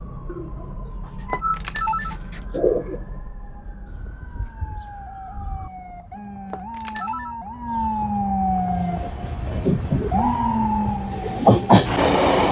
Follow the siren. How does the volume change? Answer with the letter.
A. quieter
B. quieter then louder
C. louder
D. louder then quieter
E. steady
C.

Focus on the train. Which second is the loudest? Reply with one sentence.
The volume of the train peaks at 12 seconds.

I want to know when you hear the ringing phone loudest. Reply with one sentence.
The volume of the ringing phone peaks at 2 seconds.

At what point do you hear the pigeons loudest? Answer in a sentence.
The volume of the pigeons peaks at 3 seconds.